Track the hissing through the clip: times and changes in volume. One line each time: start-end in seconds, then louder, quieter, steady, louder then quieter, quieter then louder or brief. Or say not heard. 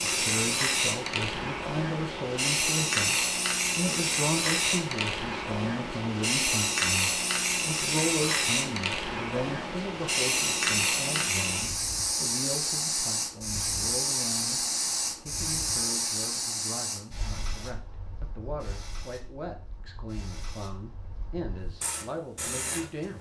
0.0-23.1 quieter.